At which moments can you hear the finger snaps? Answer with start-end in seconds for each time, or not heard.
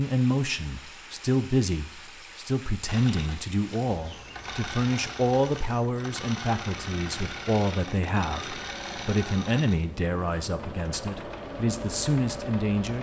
not heard.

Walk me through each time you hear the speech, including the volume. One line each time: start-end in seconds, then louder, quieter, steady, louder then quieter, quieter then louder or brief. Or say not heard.
0.0-12.9 steady.